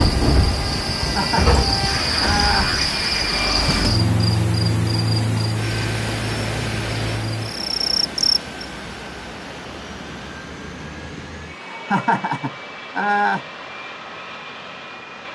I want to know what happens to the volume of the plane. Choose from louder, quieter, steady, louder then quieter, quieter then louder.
quieter.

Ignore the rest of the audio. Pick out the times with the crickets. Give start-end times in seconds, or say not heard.
0.0-8.7.